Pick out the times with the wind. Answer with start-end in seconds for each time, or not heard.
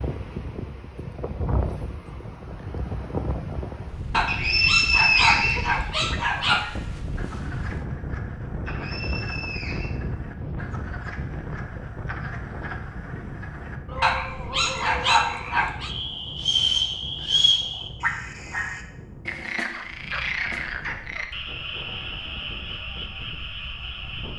0.0-24.3.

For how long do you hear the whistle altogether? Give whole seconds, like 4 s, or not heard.
4 s.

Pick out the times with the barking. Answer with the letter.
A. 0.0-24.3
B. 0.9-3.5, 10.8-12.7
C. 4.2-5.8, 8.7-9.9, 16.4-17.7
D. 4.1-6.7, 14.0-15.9
D.